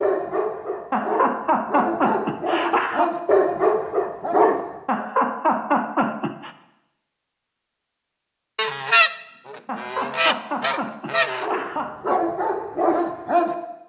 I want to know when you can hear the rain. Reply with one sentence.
You can't hear the rain here.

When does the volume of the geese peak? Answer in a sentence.
The loudest moment of the geese is at 9 seconds.